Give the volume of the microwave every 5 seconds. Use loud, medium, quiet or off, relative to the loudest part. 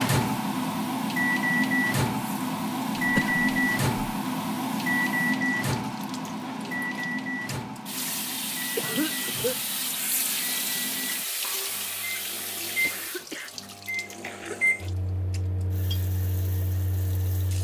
loud, medium, medium, quiet.